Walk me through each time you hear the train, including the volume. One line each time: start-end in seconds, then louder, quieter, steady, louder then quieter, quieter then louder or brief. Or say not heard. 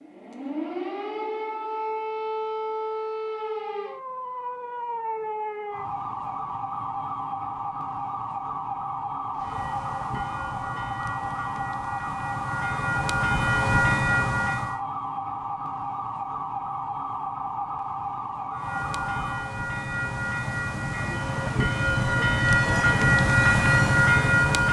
9.3-14.8 louder
18.5-24.6 louder.